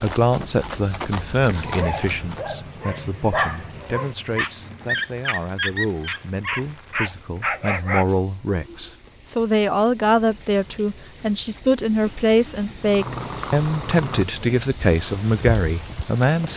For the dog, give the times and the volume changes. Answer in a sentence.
You can hear the dog from 1.6 to 8.1 s, getting louder.